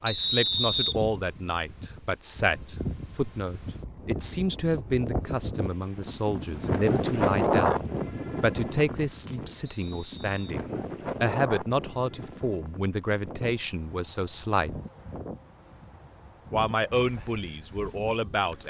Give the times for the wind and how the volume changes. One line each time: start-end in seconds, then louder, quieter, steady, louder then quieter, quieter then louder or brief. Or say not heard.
0.0-18.6 louder then quieter.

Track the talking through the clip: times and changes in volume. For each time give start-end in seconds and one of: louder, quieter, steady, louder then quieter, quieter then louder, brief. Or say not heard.
0.0-14.8 steady
16.5-18.6 brief.